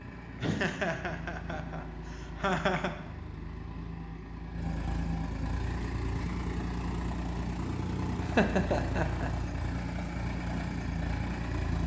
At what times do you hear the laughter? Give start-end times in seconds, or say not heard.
0.3-3.0, 8.2-9.3.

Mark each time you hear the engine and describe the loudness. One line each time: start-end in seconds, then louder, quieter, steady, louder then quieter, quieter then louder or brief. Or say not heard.
0.0-11.8 louder.